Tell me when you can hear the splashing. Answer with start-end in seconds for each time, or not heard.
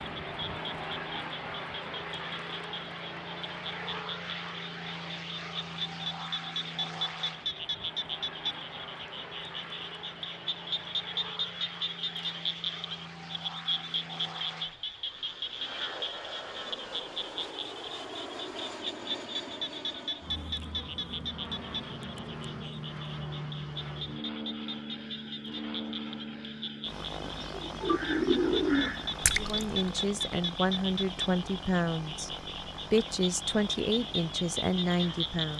29.2-29.7.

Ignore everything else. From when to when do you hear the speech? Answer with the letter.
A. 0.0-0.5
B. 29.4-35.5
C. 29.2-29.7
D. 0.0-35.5
B.